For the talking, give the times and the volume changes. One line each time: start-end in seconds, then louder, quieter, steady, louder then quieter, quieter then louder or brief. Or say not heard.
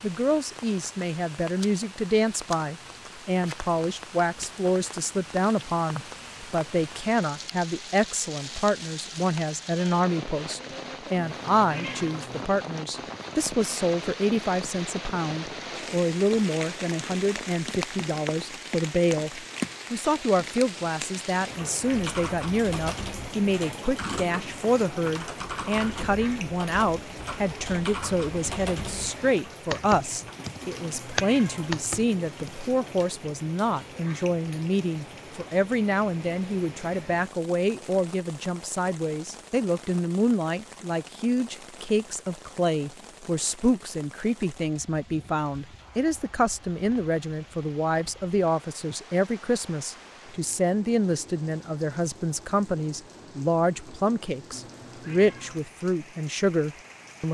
0.0-57.2 steady.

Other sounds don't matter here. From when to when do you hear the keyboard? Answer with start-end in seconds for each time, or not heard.
21.9-32.5.